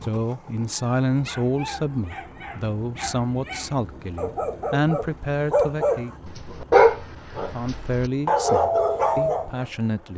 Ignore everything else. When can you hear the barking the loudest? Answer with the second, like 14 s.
7 s.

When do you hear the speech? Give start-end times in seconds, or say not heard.
0.0-6.1, 7.5-10.1.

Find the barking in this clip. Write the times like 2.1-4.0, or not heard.
0.7-9.7.